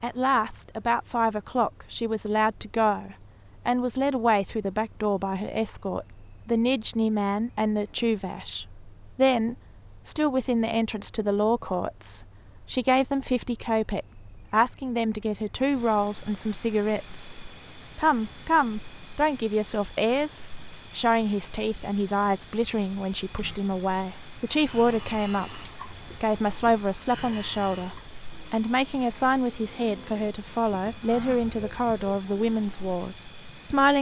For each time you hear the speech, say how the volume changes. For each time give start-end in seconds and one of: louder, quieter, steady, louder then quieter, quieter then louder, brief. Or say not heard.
0.0-25.6 steady
26.2-33.9 steady.